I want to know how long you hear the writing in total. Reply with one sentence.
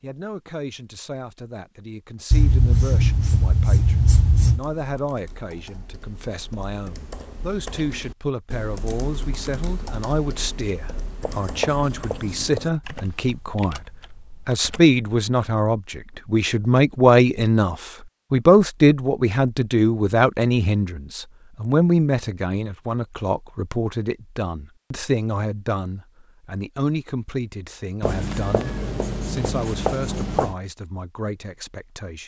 The writing can be heard for 6 seconds in total.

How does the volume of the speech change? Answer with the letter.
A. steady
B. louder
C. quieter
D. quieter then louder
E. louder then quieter
E.